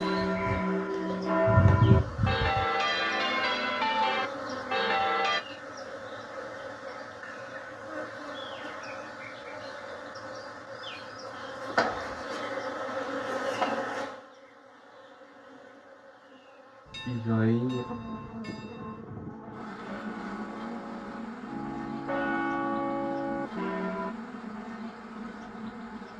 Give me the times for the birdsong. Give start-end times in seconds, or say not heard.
not heard.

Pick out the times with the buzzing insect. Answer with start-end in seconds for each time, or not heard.
0.0-26.1.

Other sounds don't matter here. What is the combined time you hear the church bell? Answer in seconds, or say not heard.
13 s.